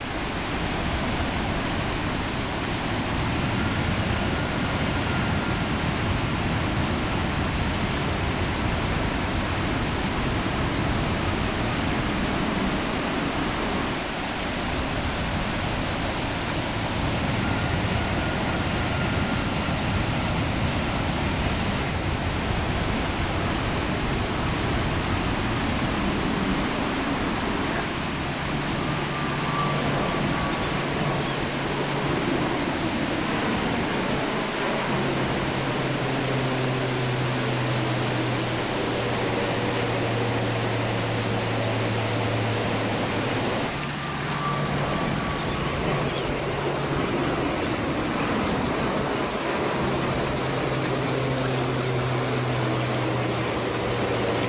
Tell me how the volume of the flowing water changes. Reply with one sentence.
The loudness of the flowing water stays about the same.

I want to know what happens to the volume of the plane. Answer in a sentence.
The loudness of the plane stays about the same.